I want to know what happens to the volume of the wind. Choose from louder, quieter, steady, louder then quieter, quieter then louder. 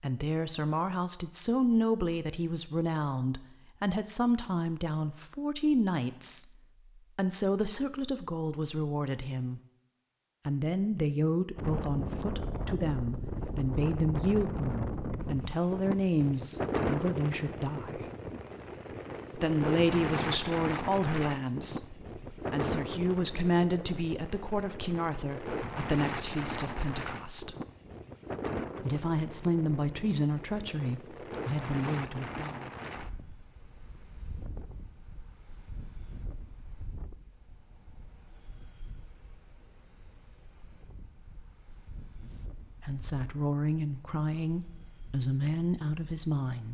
quieter.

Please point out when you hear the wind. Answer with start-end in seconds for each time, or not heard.
11.6-46.6.